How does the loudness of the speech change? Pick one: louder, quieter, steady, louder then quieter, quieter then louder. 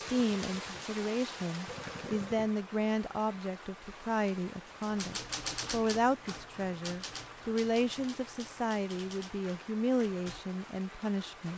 steady.